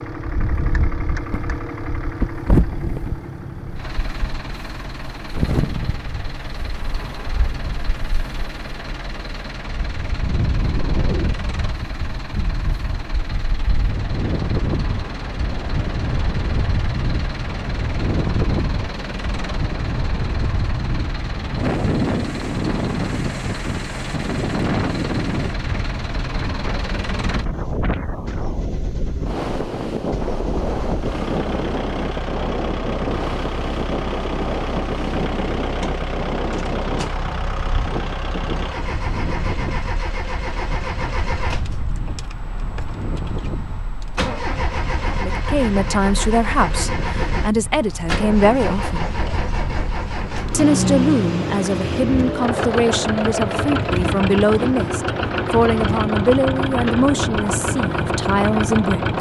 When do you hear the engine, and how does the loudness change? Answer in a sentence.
The engine can be heard from 0.0 to 59.1 s, getting louder.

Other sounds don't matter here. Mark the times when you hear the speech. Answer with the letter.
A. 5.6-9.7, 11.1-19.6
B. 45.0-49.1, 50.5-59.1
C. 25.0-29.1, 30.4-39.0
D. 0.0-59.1
B.